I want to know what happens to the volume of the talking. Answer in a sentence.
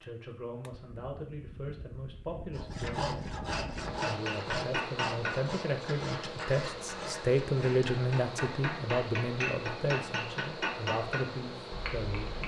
The volume of the talking goes up, then down.